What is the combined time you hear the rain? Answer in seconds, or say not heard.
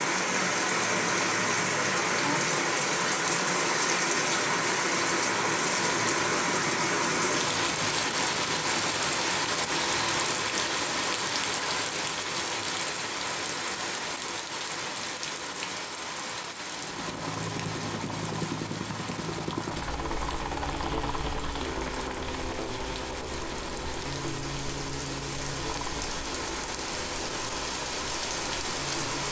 29 s.